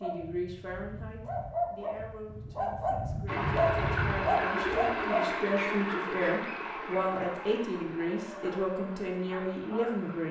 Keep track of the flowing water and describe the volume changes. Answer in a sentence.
The loudness of the flowing water goes down.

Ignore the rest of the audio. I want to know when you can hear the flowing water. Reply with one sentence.
You can hear the flowing water from 3.2 to 10.2 s.